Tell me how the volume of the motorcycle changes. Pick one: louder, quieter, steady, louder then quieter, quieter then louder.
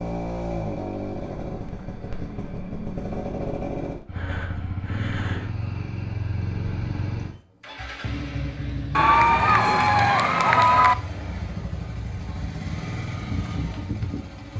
steady.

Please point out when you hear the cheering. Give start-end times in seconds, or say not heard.
8.9-10.9.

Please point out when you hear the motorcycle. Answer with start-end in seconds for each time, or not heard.
0.0-14.5.